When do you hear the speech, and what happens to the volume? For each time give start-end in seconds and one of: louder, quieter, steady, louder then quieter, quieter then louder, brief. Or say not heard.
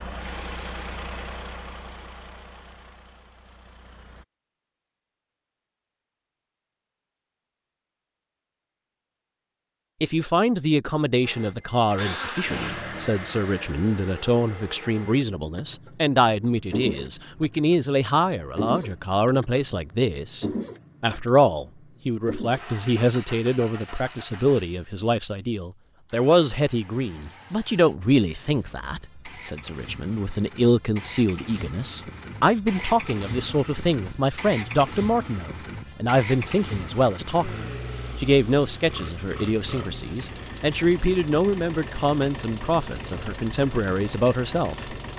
10.0-45.1 steady.